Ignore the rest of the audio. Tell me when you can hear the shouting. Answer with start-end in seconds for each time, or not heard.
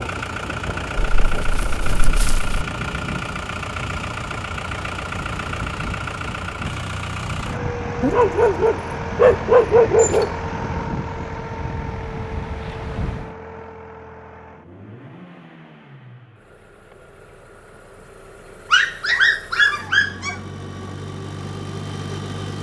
not heard.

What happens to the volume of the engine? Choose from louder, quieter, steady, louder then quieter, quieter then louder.
quieter then louder.